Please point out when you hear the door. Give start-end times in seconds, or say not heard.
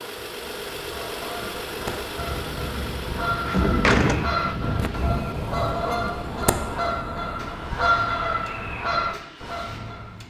3.4-4.2.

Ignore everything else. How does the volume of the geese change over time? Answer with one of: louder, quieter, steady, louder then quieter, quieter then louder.
louder.